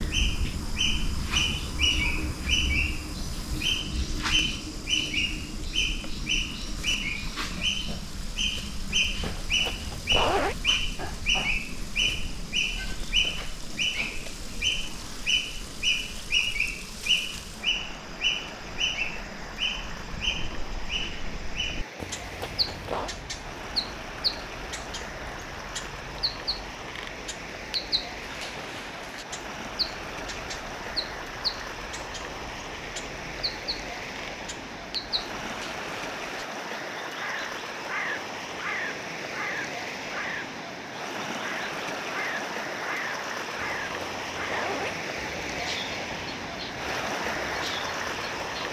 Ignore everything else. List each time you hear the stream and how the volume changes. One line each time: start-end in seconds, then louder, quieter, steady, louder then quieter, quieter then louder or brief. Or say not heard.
0.1-48.6 louder.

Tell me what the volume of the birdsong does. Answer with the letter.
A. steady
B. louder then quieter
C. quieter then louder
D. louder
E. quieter
E.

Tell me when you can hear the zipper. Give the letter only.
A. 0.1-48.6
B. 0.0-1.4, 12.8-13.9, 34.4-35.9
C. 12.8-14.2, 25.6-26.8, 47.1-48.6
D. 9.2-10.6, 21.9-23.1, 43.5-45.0
D.